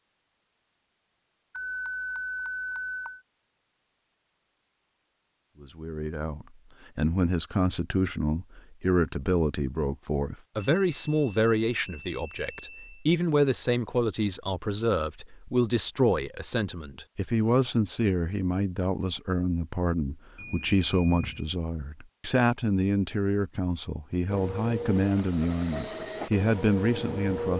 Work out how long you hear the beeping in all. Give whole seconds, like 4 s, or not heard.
5 s.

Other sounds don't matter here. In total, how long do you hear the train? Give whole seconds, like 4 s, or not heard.
3 s.